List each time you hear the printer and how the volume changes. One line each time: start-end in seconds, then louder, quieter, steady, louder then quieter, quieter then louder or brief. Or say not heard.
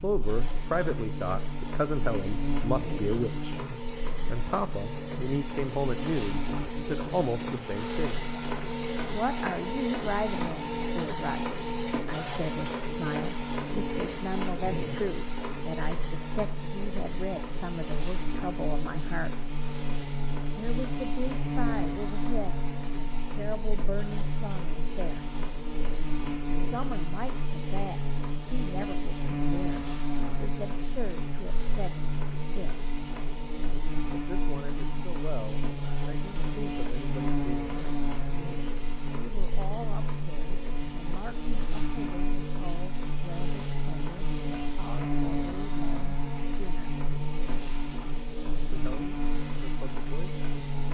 0.0-50.9 quieter.